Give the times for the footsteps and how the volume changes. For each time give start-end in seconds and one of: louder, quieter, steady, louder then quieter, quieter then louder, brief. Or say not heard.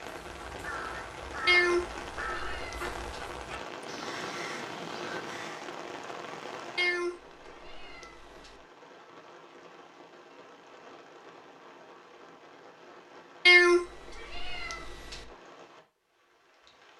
not heard.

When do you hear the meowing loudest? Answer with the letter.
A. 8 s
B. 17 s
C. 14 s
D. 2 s
C.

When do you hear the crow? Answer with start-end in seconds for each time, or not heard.
0.1-5.7.